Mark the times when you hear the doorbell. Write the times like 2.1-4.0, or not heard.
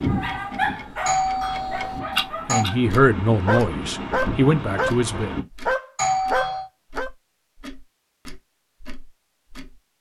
1.1-2.6, 6.0-6.7.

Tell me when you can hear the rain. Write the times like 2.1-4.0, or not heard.
0.0-5.5.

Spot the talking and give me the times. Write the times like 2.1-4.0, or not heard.
2.5-5.3.